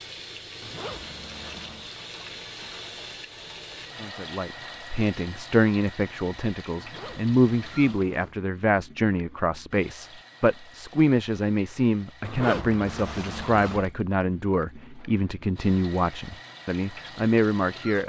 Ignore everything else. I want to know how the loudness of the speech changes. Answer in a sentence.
The loudness of the speech stays about the same.